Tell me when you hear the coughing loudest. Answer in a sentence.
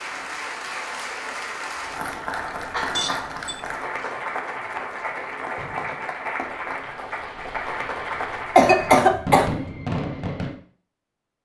The volume of the coughing peaks at 9 seconds.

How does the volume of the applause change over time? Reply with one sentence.
The volume of the applause stays about the same.